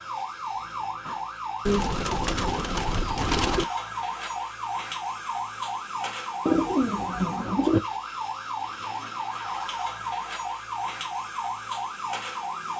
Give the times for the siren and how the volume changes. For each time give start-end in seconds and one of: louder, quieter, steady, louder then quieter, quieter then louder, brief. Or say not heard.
0.0-12.7 steady.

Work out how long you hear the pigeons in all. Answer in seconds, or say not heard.
3 s.